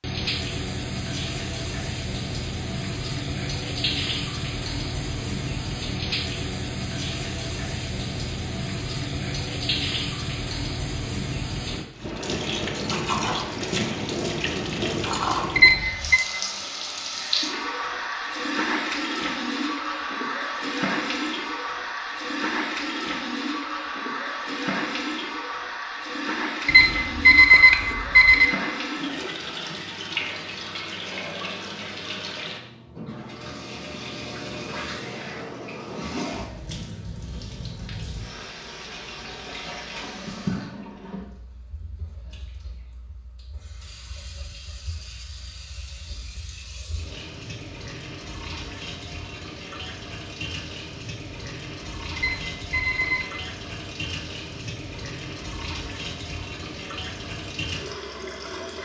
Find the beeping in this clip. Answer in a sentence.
The beeping can be heard from 15.6 to 16.2 s, from 26.6 to 28.5 s and from 52.1 to 53.2 s.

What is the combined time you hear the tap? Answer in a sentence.
The tap can be heard for 59 seconds in total.